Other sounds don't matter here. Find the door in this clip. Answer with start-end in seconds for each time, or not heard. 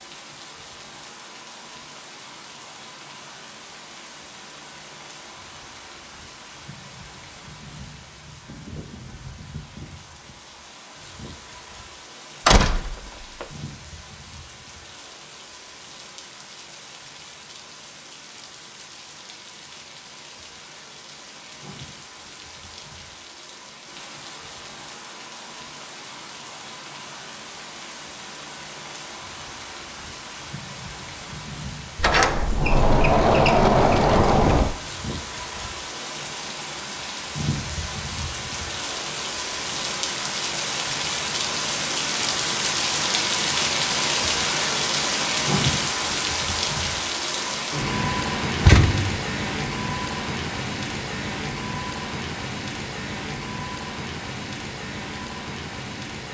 12.4-13.4, 31.9-34.8, 48.6-49.2.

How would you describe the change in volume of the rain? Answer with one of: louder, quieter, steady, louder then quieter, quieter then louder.
louder.